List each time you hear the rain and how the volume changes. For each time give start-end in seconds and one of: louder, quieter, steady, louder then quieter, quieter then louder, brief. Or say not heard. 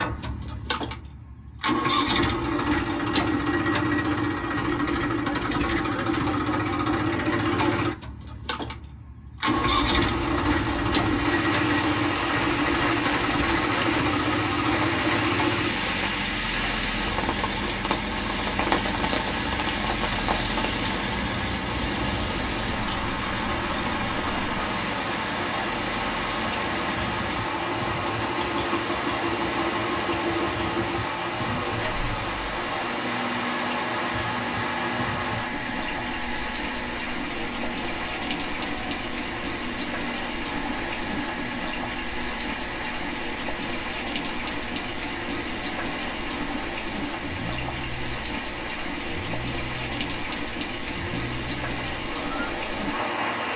9.4-53.5 steady.